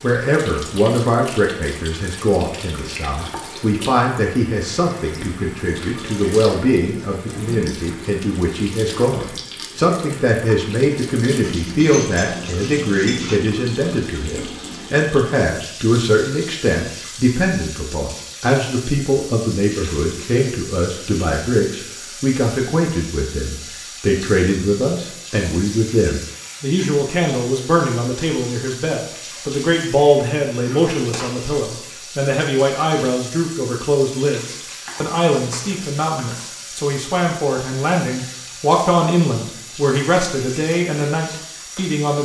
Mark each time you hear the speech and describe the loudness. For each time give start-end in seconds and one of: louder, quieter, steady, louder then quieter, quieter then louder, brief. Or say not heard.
0.0-42.1 steady.